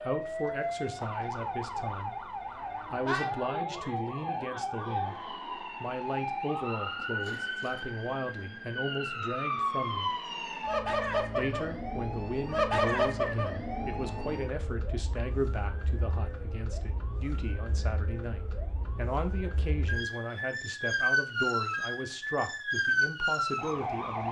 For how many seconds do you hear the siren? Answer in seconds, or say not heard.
24 s.